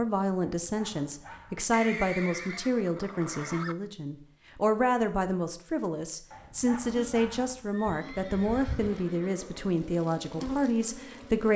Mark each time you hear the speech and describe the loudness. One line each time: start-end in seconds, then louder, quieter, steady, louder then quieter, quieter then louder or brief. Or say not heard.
0.0-11.5 steady.